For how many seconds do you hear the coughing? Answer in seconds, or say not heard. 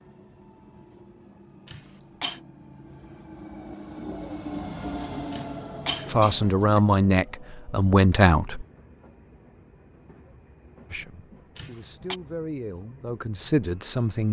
3 s.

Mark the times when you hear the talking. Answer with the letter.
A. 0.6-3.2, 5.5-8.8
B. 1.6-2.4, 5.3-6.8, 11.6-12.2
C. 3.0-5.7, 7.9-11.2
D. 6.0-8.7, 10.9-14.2
D.